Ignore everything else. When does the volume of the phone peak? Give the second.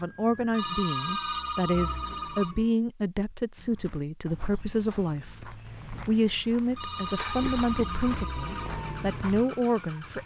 1 s.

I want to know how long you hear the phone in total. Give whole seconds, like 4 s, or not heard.
4 s.